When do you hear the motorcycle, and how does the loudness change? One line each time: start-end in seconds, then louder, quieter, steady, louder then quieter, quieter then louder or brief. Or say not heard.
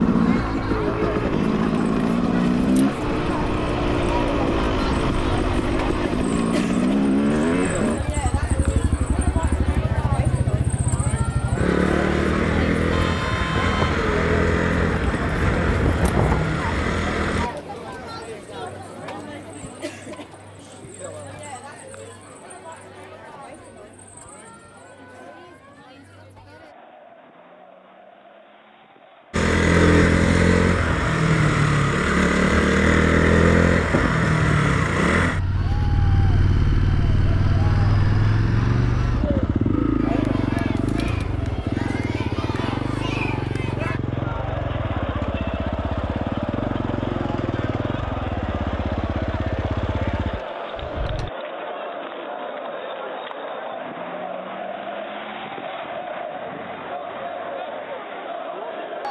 0.0-17.5 steady
29.3-51.3 quieter.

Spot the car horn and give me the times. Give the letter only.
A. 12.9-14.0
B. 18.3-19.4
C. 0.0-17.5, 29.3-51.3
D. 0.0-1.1
A.